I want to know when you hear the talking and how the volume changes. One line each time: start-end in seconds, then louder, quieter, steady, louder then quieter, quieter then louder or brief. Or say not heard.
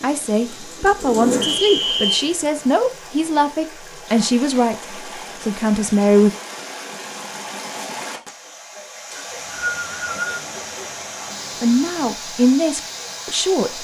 0.0-6.3 steady
11.6-13.7 brief.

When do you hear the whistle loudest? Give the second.
2 s.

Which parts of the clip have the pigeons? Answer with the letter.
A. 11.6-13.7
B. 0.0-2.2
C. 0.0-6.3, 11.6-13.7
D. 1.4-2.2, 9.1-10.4
B.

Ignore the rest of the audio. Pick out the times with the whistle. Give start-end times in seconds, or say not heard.
1.4-2.2, 9.1-10.4.